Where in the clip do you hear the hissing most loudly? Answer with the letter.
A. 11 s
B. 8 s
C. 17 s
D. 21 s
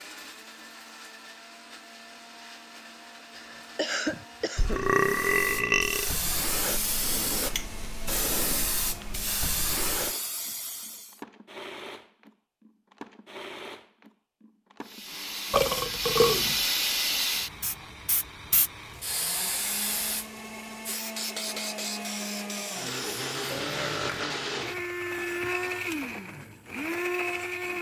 C.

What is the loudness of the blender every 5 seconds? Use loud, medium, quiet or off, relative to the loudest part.
quiet, quiet, quiet, quiet, loud, loud.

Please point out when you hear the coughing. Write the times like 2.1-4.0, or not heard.
3.4-4.8.